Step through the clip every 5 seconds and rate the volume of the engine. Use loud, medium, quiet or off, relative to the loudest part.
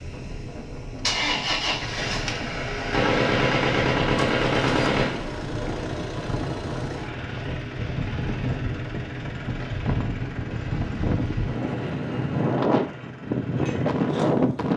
loud, medium, medium.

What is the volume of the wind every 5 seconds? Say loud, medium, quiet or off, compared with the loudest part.
quiet, medium, loud.